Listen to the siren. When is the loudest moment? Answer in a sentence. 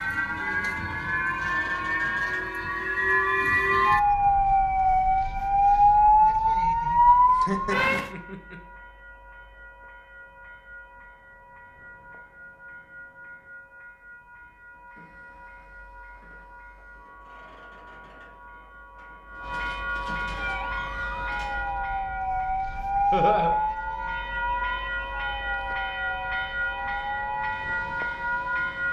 The loudest moment of the siren is at 6 seconds.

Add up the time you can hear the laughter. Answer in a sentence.
The laughter can be heard for 2 seconds in total.